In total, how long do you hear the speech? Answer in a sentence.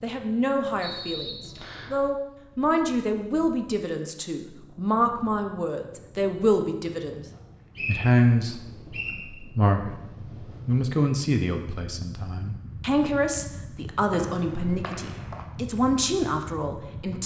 The speech can be heard for 16 seconds in total.